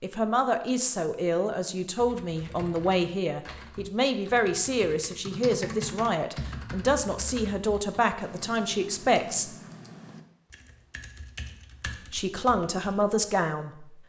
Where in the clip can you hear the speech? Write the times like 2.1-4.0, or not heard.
0.0-9.5, 12.1-13.8.